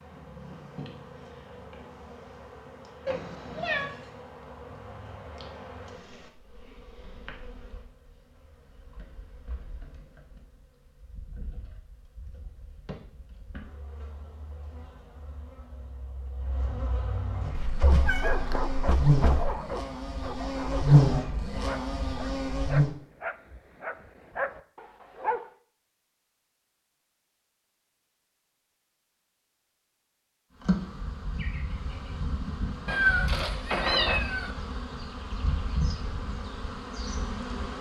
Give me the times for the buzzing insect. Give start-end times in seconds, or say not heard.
0.0-22.9, 30.6-37.7.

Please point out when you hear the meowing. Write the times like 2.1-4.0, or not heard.
3.0-3.9, 17.5-19.6, 32.9-34.5.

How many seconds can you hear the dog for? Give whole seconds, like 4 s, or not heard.
8 s.